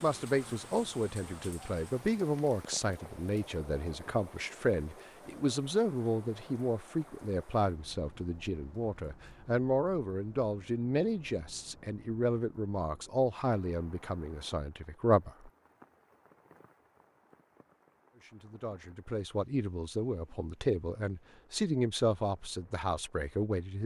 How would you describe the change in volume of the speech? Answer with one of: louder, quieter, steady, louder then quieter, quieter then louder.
steady.